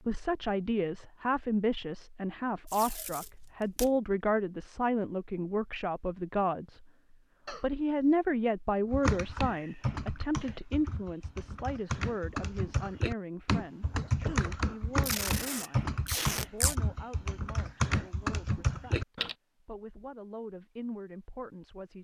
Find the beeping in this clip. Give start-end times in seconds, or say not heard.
not heard.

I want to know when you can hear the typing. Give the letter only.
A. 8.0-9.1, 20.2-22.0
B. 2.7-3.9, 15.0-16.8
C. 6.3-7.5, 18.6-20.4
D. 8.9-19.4
D.